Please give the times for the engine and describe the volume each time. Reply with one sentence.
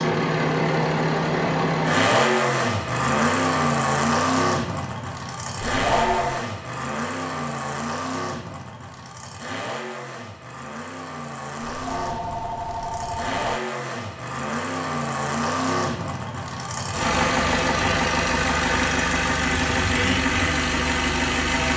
You can hear the engine from 0.0 to 21.7 s, getting quieter then louder.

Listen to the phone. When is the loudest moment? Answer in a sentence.
The volume of the phone peaks at 6 seconds.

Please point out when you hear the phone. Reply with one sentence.
The phone can be heard from 5.6 to 6.5 s and from 11.6 to 13.6 s.